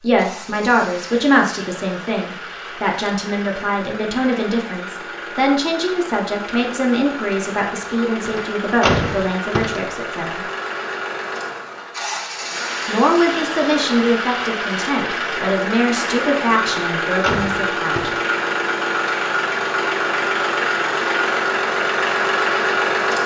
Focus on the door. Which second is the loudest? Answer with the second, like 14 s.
9 s.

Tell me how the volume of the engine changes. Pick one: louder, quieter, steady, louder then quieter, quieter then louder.
louder.